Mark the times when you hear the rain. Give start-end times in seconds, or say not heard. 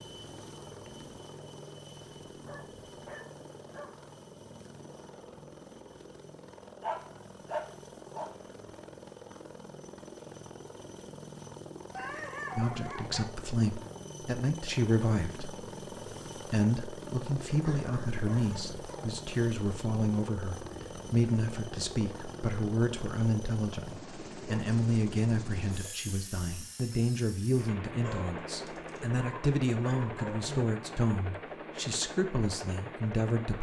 not heard.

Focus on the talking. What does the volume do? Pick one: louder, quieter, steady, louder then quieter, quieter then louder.
steady.